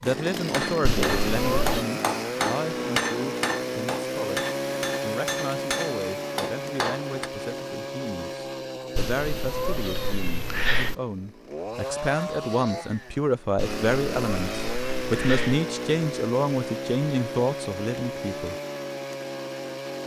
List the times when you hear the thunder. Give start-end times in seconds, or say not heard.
not heard.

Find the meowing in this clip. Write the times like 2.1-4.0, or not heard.
0.8-1.9, 8.9-10.9, 13.6-15.6.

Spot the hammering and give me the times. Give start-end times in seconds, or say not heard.
0.4-7.3.